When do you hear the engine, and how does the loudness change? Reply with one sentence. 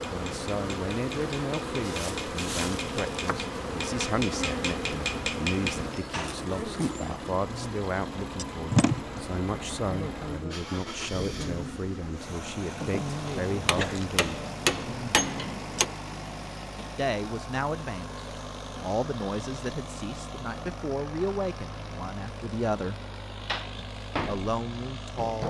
You can hear the engine from 0.0 to 25.4 s, at a steady volume.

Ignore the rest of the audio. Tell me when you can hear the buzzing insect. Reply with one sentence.
You can hear the buzzing insect from 0.0 to 15.9 s.